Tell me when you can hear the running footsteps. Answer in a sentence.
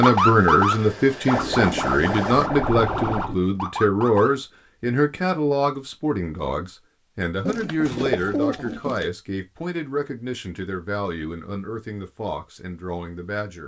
You can't hear the running footsteps here.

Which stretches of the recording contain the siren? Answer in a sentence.
You can hear the siren from 0.0 to 4.4 s.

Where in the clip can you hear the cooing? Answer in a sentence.
The cooing can be heard from 1.4 to 3.4 s and from 7.5 to 9.1 s.